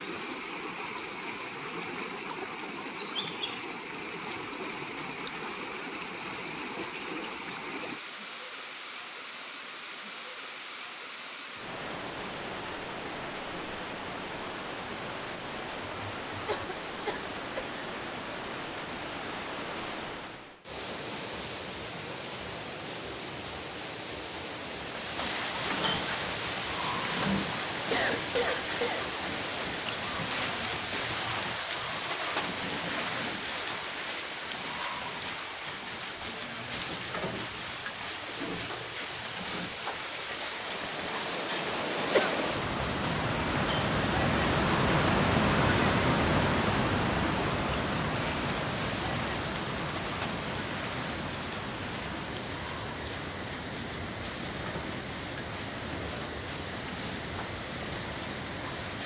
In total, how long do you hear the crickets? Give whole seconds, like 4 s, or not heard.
34 s.